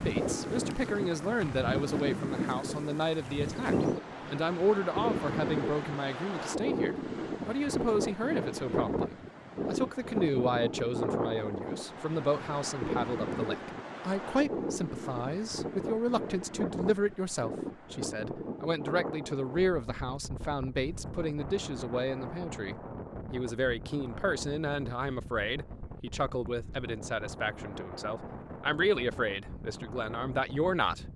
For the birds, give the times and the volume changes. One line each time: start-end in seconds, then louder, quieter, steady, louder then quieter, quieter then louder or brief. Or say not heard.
not heard.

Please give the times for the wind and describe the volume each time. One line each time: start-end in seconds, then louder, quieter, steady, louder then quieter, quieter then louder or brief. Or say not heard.
0.0-31.1 quieter.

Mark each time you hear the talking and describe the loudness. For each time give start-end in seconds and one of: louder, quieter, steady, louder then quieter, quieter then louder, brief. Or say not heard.
0.0-31.1 steady.